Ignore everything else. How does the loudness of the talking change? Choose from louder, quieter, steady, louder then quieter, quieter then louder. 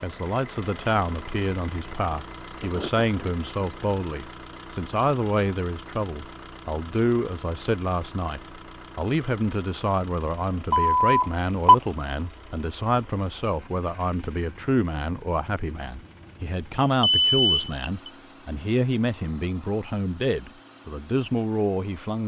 steady.